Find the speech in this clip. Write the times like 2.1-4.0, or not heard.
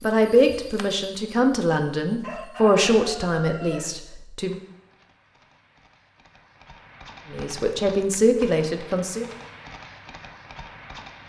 0.0-4.6, 7.3-9.2.